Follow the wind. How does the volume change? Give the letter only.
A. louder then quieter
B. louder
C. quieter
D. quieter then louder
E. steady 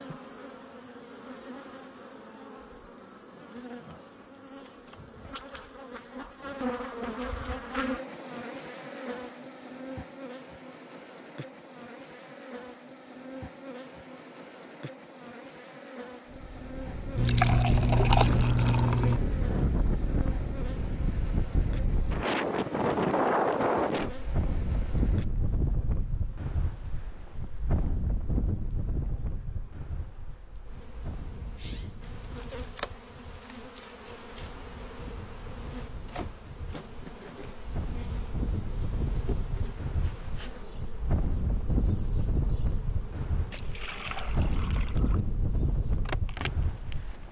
D.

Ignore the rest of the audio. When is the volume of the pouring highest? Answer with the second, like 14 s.
18 s.